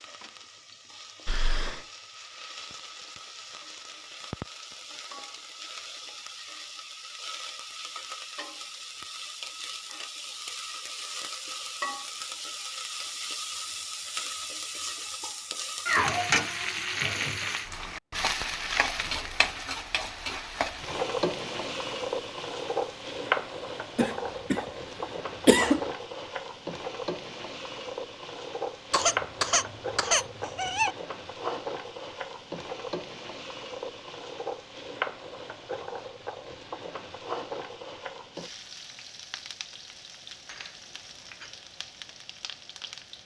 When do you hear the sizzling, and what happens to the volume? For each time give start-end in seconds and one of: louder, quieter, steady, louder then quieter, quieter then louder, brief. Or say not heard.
0.0-43.2 louder then quieter.